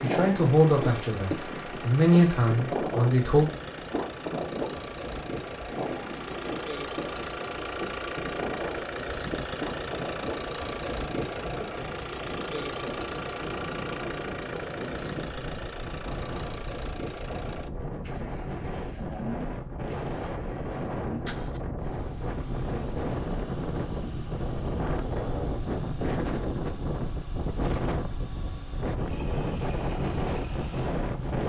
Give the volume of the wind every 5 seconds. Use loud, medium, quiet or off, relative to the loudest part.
loud, medium, medium, medium, loud, loud, loud.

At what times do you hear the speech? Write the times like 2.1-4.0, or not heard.
0.0-3.5.